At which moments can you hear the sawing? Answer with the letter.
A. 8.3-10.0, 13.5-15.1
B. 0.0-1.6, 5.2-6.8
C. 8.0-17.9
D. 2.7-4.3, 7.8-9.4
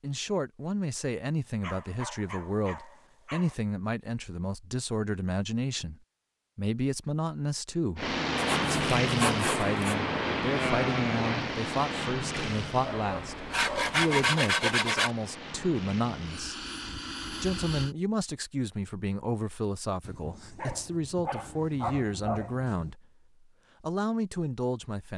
A.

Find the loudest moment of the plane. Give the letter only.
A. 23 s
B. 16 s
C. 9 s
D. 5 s
C.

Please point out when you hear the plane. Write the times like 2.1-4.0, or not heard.
8.0-17.9.